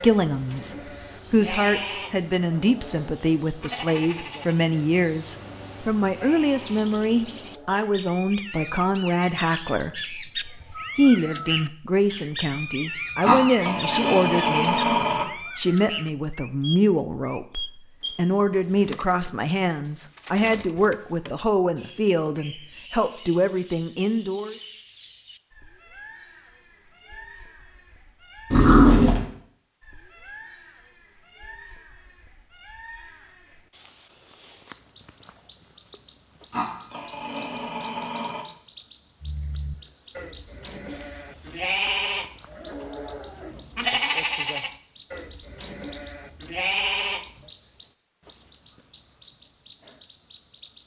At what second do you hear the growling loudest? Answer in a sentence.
The volume of the growling peaks at 29 seconds.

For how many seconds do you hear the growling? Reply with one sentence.
You can hear the growling for 5 seconds altogether.